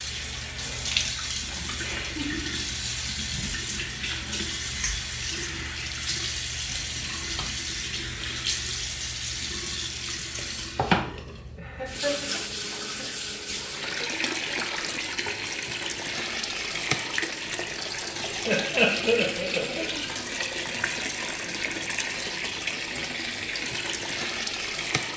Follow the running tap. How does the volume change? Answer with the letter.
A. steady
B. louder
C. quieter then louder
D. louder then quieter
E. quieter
A.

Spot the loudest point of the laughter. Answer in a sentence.
The volume of the laughter peaks at 19 seconds.